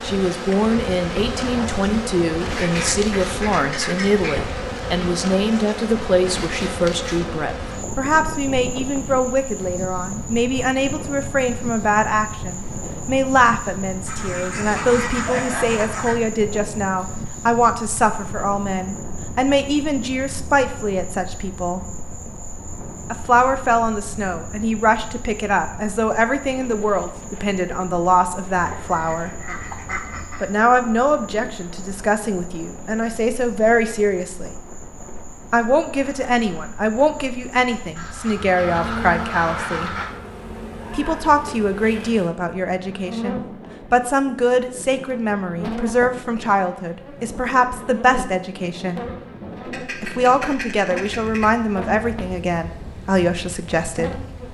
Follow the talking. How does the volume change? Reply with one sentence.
The volume of the talking stays about the same.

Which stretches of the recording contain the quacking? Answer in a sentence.
You can hear the quacking from 2.5 to 4.5 s, from 14.1 to 16.2 s, from 28.6 to 30.5 s, from 38.0 to 40.1 s and from 49.6 to 51.5 s.